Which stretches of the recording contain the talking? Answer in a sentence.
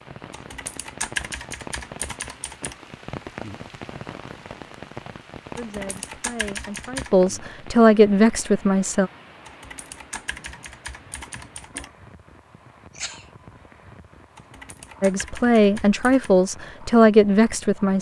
The talking can be heard from 5.5 to 9.1 s and from 15.0 to 17.9 s.